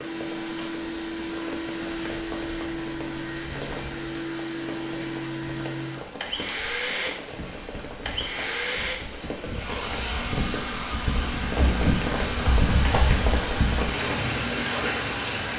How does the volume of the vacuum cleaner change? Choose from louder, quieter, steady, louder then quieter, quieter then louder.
steady.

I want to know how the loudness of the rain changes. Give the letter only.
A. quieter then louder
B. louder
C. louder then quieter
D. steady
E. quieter
B.